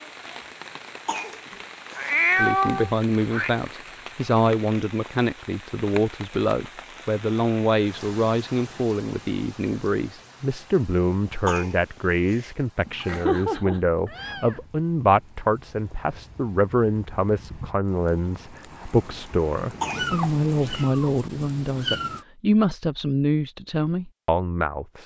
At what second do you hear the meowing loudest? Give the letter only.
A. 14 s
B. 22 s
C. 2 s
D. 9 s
C.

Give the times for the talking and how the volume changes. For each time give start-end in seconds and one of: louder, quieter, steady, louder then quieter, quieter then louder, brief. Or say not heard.
2.4-25.0 steady.